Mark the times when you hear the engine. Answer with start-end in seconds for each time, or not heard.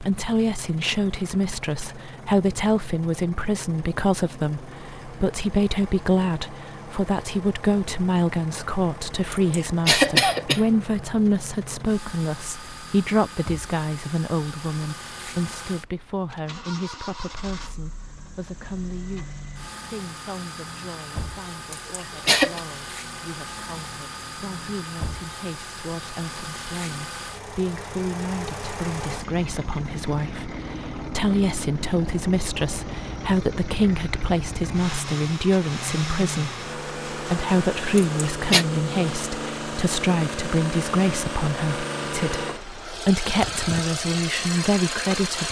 0.0-45.4.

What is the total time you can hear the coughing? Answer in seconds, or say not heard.
3 s.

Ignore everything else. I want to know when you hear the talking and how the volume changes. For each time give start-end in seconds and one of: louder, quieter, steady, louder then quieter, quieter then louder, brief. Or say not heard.
0.0-45.4 quieter then louder.